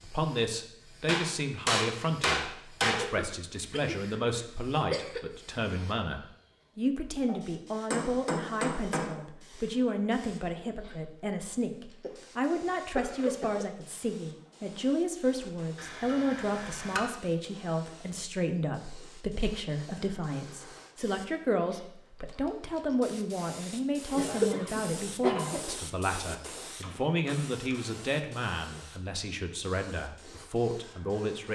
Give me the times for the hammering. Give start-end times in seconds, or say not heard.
1.1-3.0, 7.9-9.2, 15.8-17.1, 25.9-27.9.